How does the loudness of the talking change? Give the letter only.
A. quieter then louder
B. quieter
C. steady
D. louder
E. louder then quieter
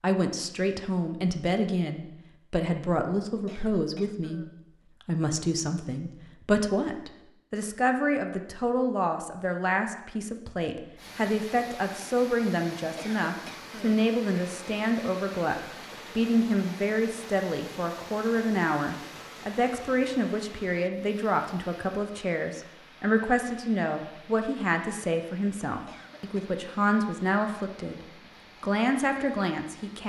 C.